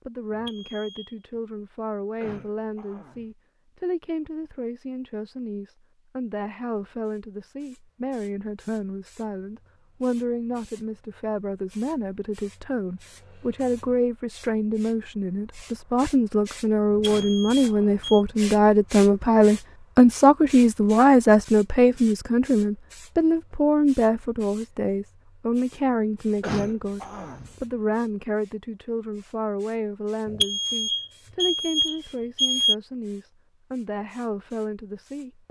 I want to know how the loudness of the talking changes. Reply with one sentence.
The loudness of the talking goes up, then down.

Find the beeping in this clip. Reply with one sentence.
You can hear the beeping from 0.3 to 1.1 s, from 16.9 to 18.2 s and from 30.2 to 32.8 s.